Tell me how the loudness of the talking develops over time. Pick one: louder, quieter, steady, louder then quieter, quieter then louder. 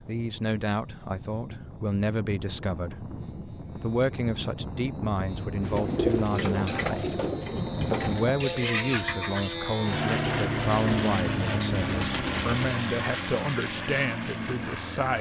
steady.